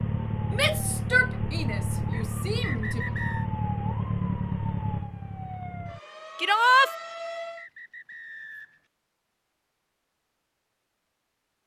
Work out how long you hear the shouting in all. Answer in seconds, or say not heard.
3 s.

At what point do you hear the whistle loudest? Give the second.
3 s.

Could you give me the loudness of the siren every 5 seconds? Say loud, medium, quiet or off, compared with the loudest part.
loud, medium, off.